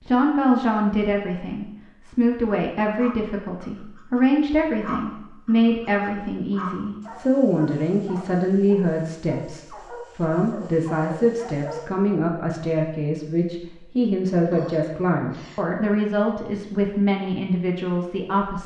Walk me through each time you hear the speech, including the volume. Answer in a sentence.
The speech can be heard from 0.1 to 18.6 s, at a steady volume.